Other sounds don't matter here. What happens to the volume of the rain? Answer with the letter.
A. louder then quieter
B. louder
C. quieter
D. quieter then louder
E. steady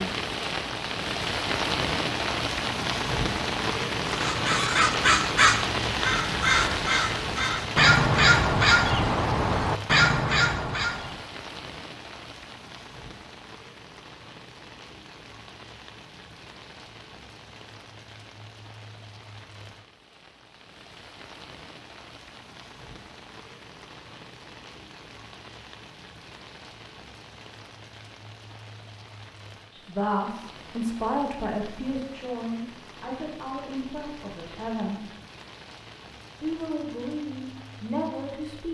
C.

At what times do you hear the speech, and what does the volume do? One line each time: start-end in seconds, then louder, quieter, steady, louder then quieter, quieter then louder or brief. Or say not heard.
29.7-35.0 quieter
36.4-38.6 brief.